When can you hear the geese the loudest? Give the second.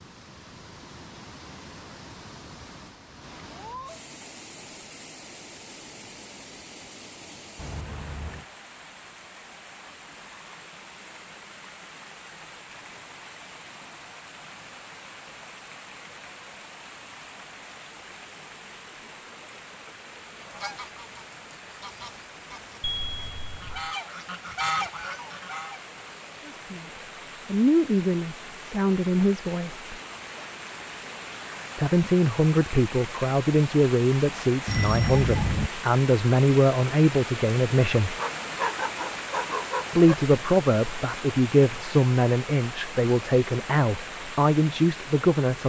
25 s.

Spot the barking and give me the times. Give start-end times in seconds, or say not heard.
38.1-40.1.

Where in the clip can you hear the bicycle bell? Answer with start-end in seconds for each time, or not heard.
7.5-8.4, 22.8-23.9, 34.6-35.7.